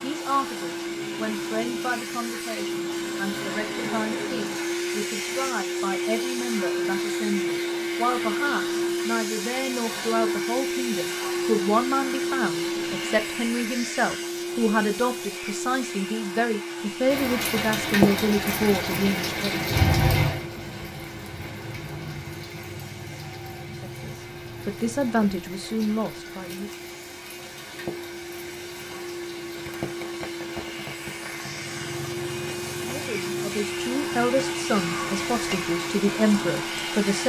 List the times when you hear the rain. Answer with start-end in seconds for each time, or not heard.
17.1-37.2.